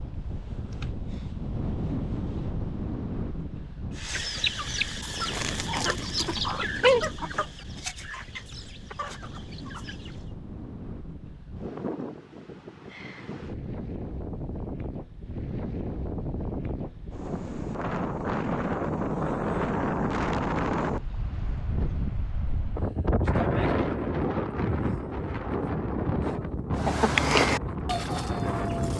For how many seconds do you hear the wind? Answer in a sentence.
You can hear the wind for 29 seconds altogether.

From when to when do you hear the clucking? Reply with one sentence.
The clucking can be heard from 4.0 to 10.2 s and from 26.8 to 28.9 s.